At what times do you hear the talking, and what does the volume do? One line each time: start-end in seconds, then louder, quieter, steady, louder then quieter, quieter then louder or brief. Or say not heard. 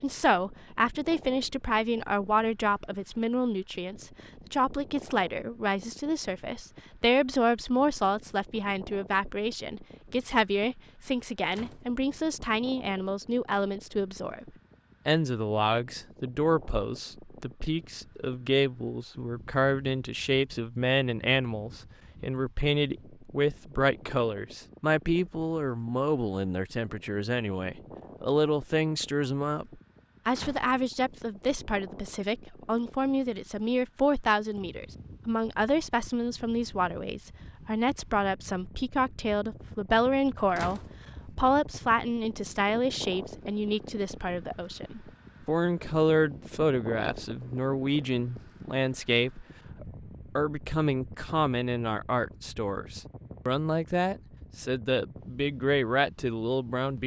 0.0-14.4 steady
15.1-29.6 steady
30.2-57.0 steady.